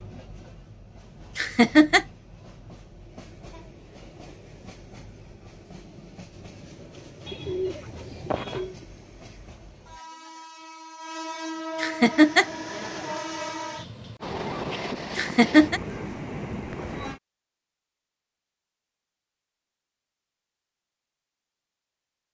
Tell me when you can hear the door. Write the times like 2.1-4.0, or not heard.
not heard.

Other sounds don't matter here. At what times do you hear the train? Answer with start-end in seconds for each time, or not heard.
0.0-17.2.